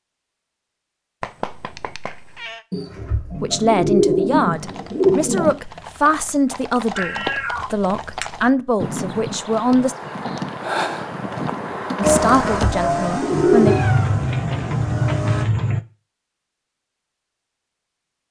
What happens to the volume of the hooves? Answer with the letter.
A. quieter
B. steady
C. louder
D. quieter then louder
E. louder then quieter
C.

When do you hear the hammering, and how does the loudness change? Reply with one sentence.
You can't hear the hammering here.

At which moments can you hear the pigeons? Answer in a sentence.
You can hear the pigeons from 2.7 to 5.5 s and from 12.2 to 13.8 s.